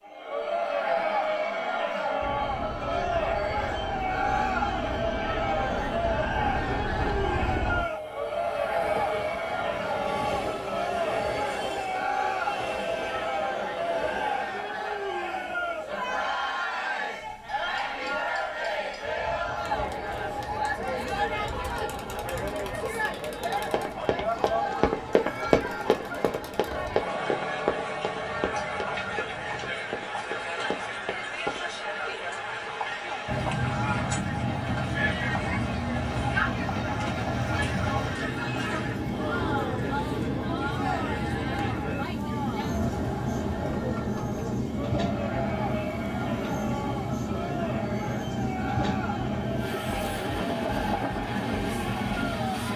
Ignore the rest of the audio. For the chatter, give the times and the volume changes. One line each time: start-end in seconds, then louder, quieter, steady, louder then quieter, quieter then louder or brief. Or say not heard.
0.1-52.7 quieter.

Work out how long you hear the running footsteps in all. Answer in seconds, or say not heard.
8 s.